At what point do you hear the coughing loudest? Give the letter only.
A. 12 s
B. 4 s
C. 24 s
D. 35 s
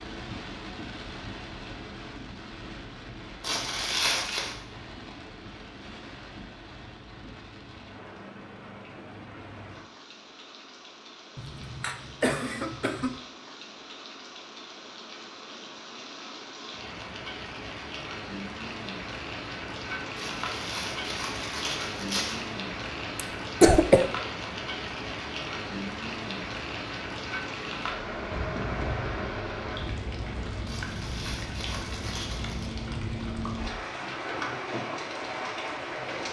C.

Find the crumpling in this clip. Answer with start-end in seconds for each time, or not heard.
3.4-4.5, 20.1-22.4, 30.6-32.7.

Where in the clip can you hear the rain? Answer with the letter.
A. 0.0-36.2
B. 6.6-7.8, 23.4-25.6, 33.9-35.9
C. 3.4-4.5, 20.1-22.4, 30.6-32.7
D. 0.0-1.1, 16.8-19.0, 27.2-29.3
A.